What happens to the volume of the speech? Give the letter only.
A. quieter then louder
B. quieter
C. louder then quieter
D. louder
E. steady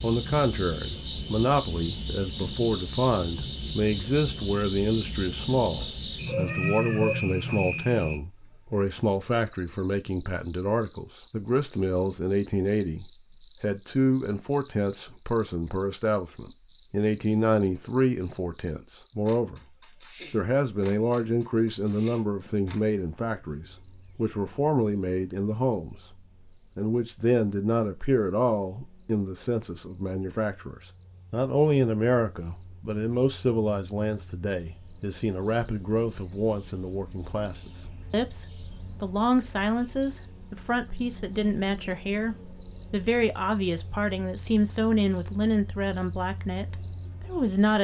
E.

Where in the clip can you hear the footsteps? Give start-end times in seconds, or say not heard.
not heard.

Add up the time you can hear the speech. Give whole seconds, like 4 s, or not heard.
46 s.